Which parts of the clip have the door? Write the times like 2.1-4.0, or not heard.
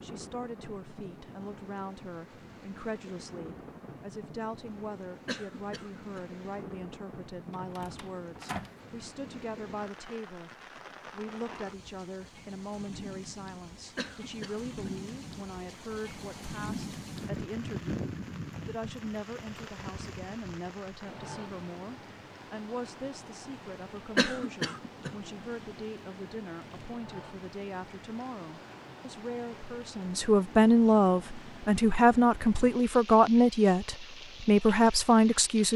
7.5-8.8.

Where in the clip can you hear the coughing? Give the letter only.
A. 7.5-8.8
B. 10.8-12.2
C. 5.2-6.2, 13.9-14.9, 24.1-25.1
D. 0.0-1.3
C.